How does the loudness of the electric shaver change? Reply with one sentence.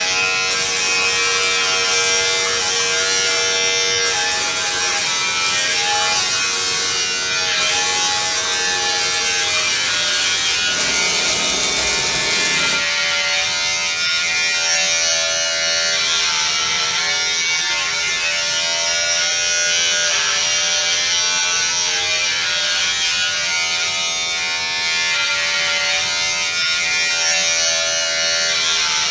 The volume of the electric shaver stays about the same.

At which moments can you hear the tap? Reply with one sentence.
The tap can be heard from 0.0 to 12.8 s.